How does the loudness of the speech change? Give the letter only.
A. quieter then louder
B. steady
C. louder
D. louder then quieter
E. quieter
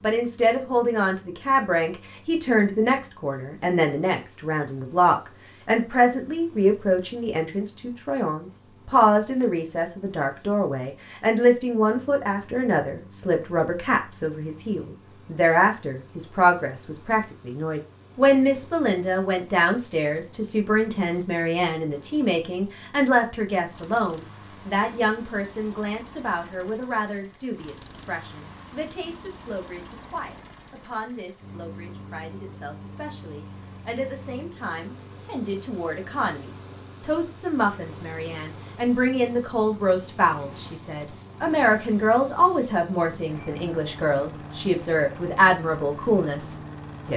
A.